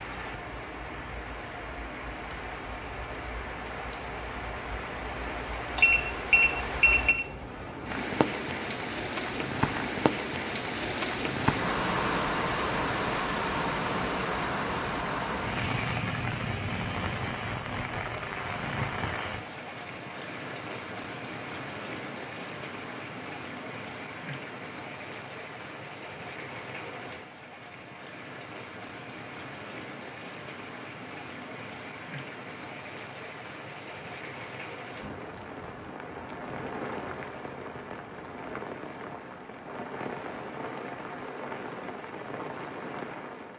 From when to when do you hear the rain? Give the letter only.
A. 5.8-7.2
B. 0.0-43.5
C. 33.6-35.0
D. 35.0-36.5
B.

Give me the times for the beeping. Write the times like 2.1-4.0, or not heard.
5.8-7.2.